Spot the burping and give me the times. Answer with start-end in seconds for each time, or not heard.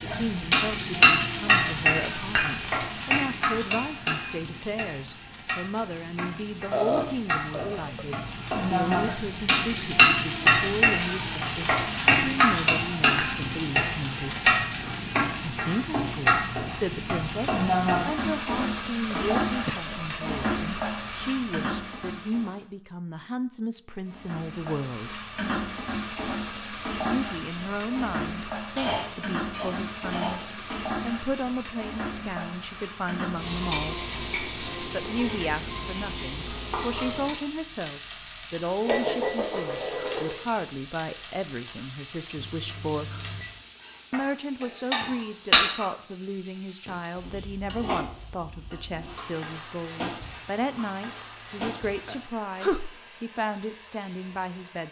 6.7-8.1, 19.1-19.9, 52.0-53.0.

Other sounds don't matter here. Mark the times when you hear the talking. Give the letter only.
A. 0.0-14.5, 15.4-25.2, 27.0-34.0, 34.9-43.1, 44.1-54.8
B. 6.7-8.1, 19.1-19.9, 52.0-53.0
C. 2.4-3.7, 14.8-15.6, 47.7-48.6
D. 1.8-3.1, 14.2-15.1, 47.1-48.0
A.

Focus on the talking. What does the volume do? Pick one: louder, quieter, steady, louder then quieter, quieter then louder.
steady.